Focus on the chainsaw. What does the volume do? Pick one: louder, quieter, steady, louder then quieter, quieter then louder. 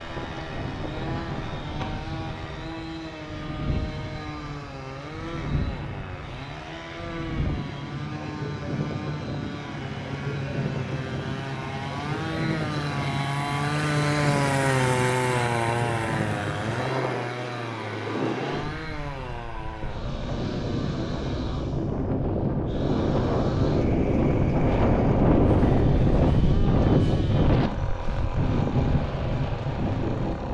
louder then quieter.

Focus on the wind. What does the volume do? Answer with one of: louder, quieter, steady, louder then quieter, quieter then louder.
louder.